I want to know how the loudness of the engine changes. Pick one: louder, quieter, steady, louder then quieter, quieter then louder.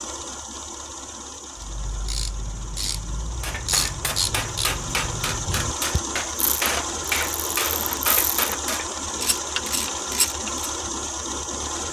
louder.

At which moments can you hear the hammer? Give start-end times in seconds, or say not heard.
3.4-8.8.